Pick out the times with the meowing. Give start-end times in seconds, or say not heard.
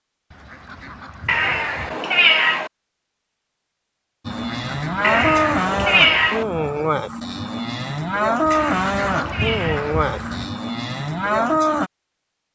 1.2-2.7, 5.0-6.5, 8.5-9.9.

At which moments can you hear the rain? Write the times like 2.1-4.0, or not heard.
not heard.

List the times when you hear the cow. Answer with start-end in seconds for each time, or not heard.
4.2-11.9.